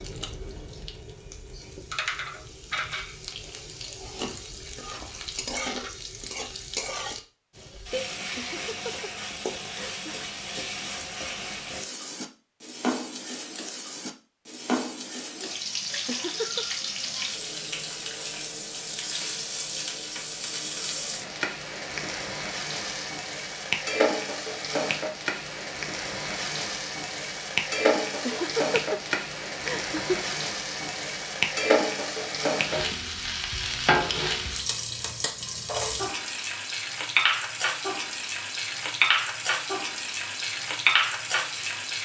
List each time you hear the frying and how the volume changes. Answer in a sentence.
You can hear the frying from 0.0 to 42.0 s, getting louder.